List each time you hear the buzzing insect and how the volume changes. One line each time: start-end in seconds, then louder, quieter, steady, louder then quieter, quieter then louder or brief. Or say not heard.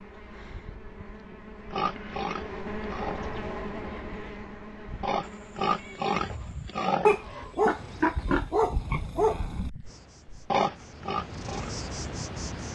0.0-8.2 louder then quieter
9.8-12.6 brief.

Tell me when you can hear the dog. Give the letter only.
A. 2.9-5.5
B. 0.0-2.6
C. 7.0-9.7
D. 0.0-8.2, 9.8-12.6
C.